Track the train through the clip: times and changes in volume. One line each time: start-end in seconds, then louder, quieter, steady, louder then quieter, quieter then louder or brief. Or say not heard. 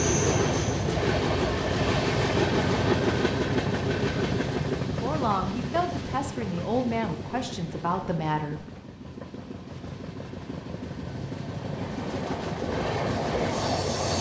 0.0-14.1 quieter then louder.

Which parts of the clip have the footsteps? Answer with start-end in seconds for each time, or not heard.
not heard.